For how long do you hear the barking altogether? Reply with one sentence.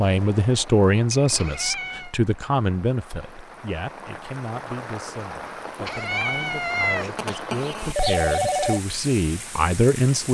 The barking can't be heard in this clip.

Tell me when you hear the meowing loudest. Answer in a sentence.
The volume of the meowing peaks at 7 seconds.